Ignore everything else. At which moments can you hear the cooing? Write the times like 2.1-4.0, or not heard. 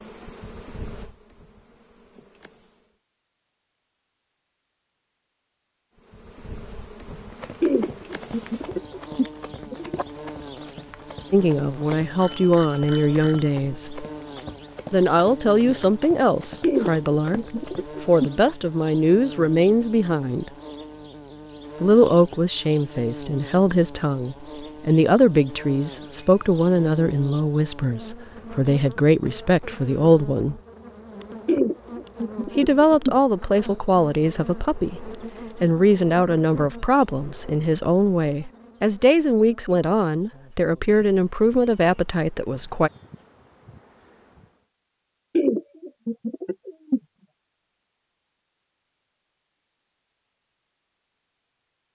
7.6-10.1, 16.6-18.3, 31.4-33.1, 45.4-47.0.